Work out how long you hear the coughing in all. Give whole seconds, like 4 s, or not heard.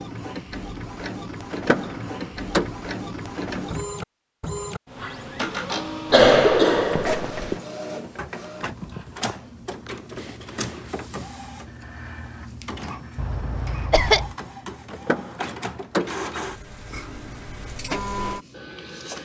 3 s.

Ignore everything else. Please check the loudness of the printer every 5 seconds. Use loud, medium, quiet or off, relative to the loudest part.
loud, loud, medium, loud.